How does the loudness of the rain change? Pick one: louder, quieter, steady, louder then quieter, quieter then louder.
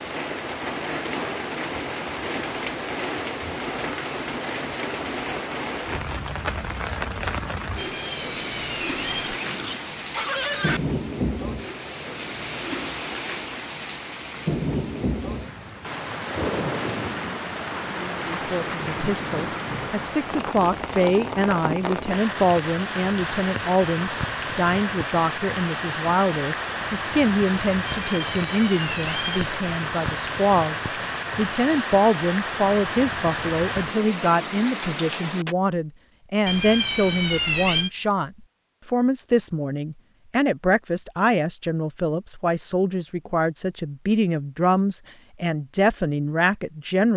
steady.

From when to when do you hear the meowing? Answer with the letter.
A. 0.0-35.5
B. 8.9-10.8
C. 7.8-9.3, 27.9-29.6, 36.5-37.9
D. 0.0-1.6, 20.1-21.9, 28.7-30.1
C.